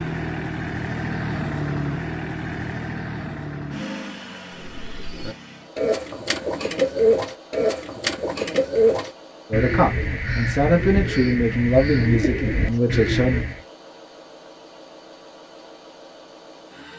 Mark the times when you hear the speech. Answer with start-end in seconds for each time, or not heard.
9.5-13.4.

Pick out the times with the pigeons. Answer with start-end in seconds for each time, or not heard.
4.5-13.6.